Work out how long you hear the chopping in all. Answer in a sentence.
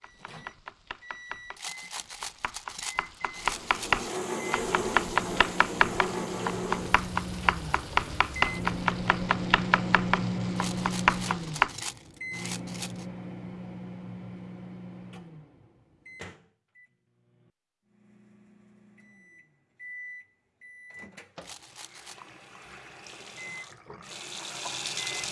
You can hear the chopping for 12 seconds altogether.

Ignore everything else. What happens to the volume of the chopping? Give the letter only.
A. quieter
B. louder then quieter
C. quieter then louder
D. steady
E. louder
E.